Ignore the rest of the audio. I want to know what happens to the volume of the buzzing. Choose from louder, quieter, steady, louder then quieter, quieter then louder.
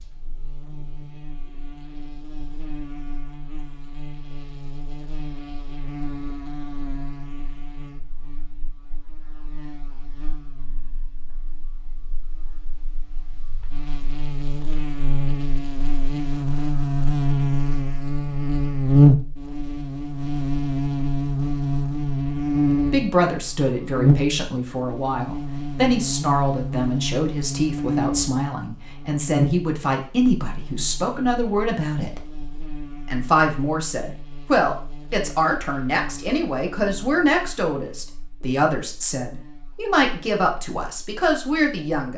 louder then quieter.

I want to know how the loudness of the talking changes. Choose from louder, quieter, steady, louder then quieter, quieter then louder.
steady.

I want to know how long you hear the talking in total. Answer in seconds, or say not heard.
18 s.